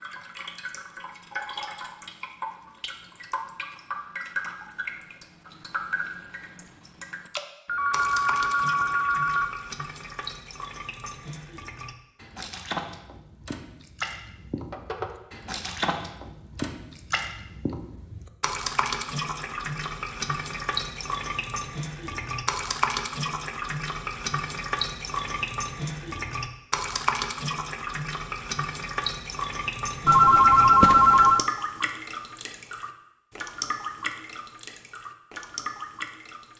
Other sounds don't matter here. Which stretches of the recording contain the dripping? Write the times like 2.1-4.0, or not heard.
0.0-36.5.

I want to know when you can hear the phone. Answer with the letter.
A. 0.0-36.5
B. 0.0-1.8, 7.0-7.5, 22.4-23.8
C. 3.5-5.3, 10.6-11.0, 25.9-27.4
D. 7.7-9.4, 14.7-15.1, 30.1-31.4
D.